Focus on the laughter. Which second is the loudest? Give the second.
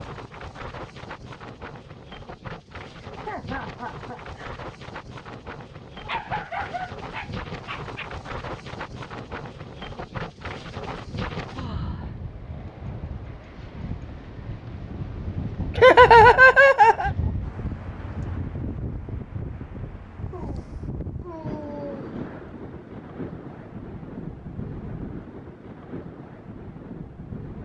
16 s.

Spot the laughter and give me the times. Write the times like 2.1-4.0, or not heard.
3.0-4.6, 15.8-17.1.